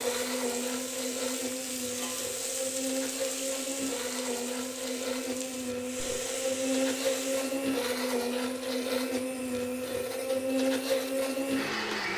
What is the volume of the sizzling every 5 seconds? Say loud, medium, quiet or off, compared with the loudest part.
loud, loud, off.